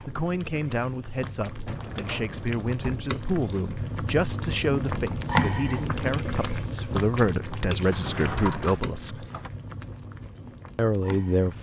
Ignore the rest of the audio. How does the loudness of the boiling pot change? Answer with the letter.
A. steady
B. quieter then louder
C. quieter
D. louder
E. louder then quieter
E.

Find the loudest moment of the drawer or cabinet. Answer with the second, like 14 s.
8 s.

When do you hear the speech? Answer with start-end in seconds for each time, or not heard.
0.1-9.3, 10.8-11.5.